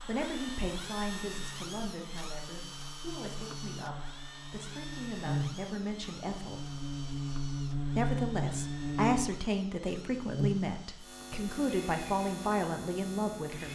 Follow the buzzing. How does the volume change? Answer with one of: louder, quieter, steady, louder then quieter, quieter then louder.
louder then quieter.